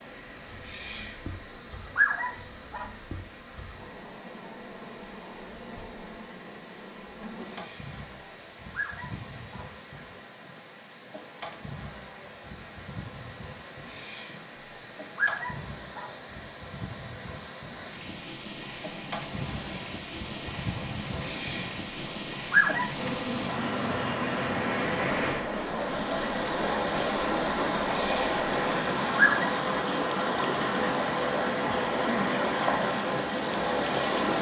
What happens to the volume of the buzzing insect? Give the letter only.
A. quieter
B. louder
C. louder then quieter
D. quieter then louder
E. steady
B.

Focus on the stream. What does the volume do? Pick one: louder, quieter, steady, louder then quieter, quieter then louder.
louder.